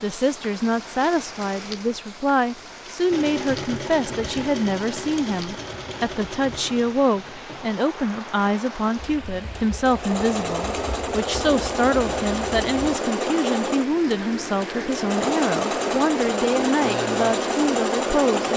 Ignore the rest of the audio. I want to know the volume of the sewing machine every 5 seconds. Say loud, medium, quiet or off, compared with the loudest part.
medium, quiet, loud, loud.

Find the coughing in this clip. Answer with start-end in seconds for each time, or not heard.
not heard.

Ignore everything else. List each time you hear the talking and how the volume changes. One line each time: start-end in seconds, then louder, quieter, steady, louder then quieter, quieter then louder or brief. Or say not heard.
0.0-18.5 steady.